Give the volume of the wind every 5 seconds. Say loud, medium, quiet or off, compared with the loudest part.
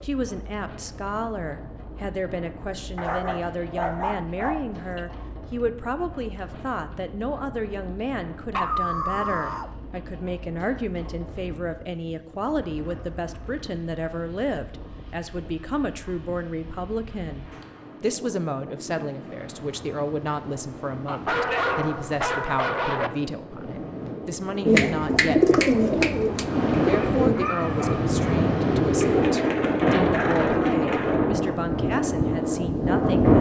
quiet, quiet, quiet, quiet, quiet, loud, loud.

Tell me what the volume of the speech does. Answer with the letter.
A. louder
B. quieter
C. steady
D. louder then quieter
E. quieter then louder
C.